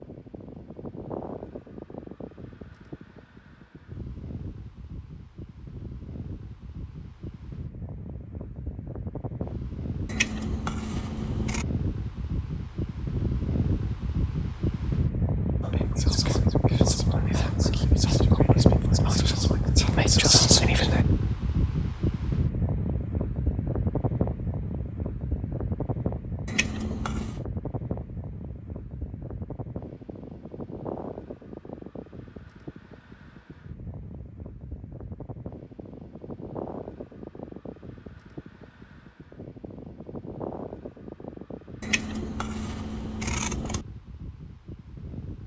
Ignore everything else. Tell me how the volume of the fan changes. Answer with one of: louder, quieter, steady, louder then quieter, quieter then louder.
louder then quieter.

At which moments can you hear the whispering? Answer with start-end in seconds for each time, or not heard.
15.6-21.1.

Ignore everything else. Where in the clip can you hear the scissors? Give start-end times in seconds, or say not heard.
10.1-11.7, 26.4-27.4, 41.8-43.9.